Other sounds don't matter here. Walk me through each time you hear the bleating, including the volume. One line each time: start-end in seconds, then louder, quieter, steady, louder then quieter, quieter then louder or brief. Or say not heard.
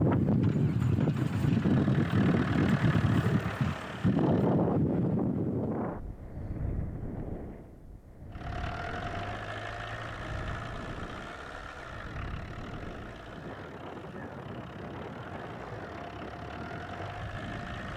not heard.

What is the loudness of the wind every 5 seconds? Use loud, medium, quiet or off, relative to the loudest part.
loud, medium, quiet, quiet.